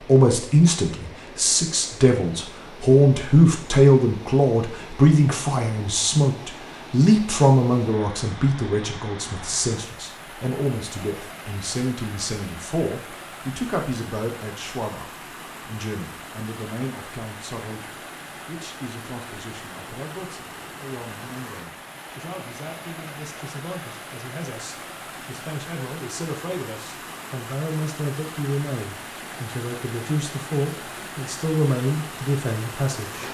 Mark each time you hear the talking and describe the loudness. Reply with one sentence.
The talking can be heard from 0.1 to 33.2 s, getting quieter then louder.